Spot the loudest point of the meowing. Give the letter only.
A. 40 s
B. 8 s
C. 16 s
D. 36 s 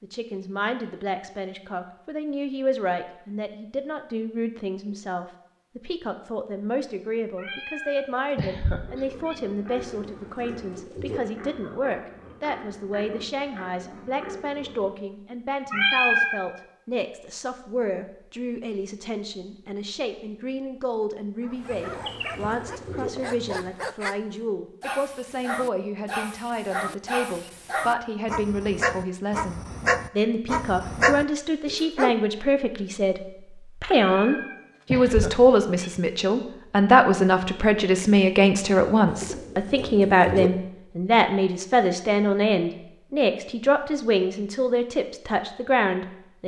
C.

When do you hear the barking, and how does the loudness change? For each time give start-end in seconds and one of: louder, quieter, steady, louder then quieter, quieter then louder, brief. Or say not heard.
21.4-24.2 brief
24.8-32.1 louder.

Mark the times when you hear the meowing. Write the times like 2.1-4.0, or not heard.
7.3-9.3, 15.7-16.4, 33.9-35.9.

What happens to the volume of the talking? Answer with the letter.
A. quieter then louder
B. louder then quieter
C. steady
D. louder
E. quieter
D.